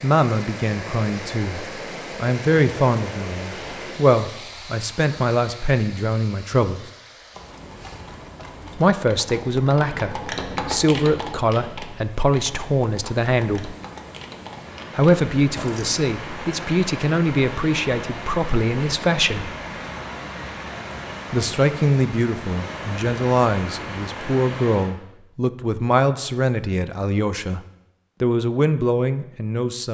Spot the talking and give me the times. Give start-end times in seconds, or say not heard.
0.0-6.8, 8.8-13.8, 14.9-19.5, 21.3-27.6, 28.2-29.8.